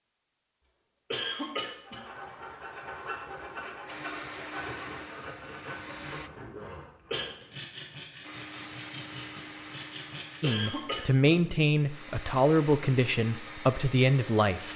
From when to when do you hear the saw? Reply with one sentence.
You can hear the saw from 1.8 to 10.4 s.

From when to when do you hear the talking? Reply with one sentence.
You can hear the talking from 10.4 to 14.7 s.